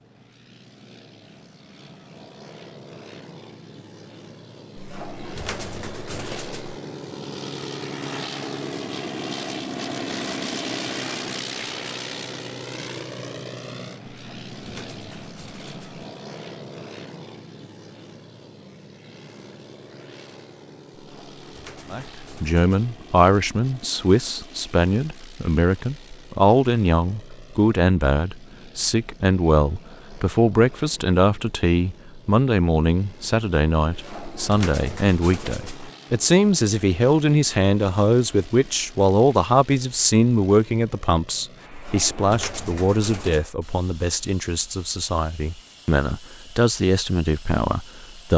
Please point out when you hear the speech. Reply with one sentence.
You can hear the speech from 21.9 to 48.3 s.